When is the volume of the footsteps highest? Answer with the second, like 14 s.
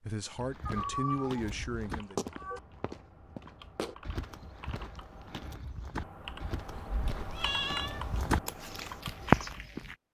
9 s.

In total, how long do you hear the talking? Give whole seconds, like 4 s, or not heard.
2 s.